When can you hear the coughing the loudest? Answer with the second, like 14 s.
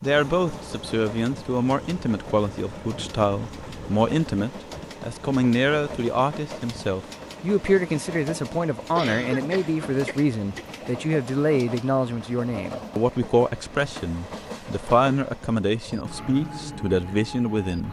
9 s.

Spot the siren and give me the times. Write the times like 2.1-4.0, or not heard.
not heard.